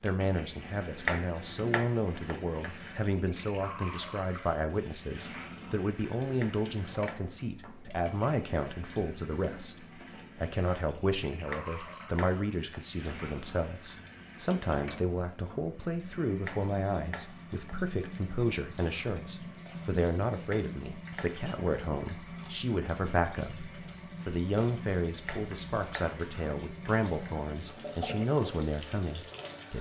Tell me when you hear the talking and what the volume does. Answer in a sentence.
The talking can be heard from 0.0 to 29.7 s, at a steady volume.